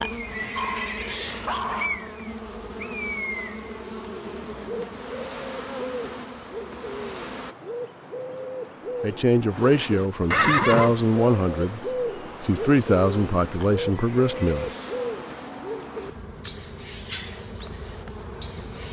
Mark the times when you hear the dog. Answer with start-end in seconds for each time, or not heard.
0.6-2.1.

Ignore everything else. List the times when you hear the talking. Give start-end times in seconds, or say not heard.
9.0-11.8, 12.4-14.7.